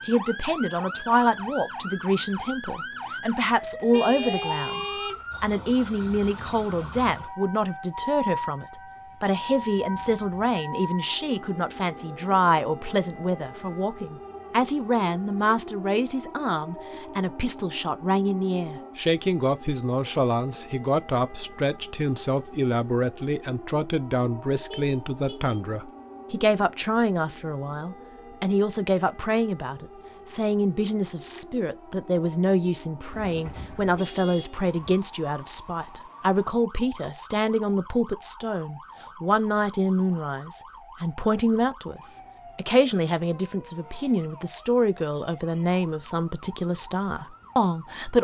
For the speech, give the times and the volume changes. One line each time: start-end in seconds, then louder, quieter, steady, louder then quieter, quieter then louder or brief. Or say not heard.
0.0-48.1 steady.